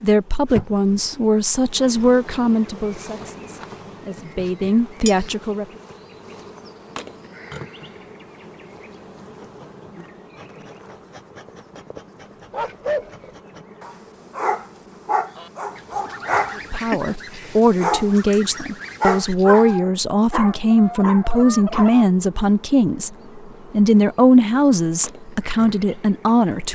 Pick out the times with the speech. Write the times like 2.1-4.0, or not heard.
0.0-5.7, 16.6-26.7.